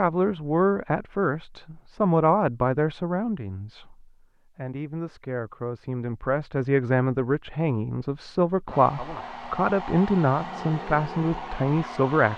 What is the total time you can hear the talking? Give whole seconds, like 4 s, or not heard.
12 s.